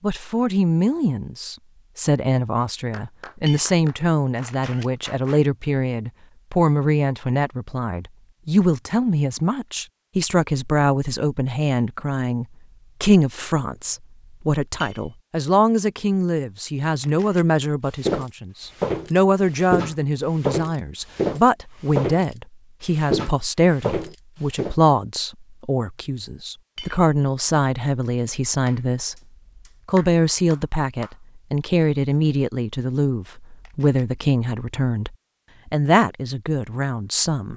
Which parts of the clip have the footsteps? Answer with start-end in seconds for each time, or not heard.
18.0-24.8.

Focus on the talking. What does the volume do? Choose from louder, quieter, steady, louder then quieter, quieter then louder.
steady.